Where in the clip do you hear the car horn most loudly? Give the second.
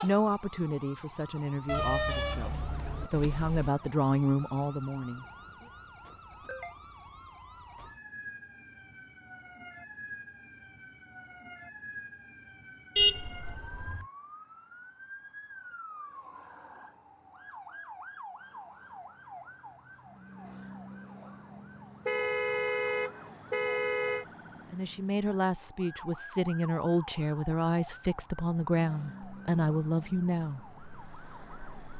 13 s.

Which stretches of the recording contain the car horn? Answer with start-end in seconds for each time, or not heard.
1.6-3.7, 12.9-14.1, 22.1-24.2.